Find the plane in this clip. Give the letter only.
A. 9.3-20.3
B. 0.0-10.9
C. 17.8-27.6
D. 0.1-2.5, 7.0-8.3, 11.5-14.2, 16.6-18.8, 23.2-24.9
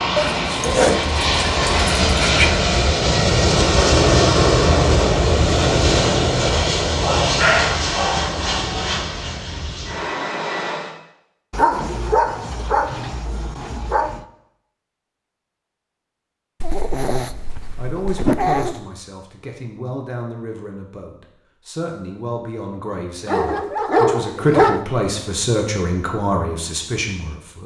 B.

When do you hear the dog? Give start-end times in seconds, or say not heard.
0.1-2.5, 7.0-8.3, 11.5-14.2, 16.6-18.8, 23.2-24.9.